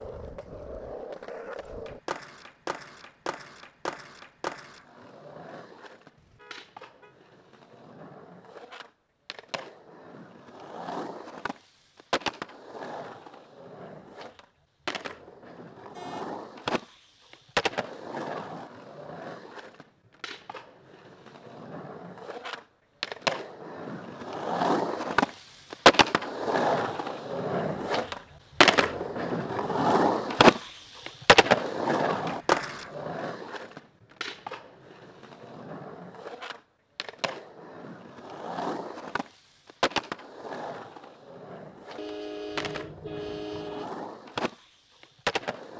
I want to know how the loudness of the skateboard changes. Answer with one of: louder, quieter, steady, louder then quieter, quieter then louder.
louder then quieter.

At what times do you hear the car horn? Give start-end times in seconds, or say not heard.
6.2-7.2, 15.9-16.4, 42.0-43.9.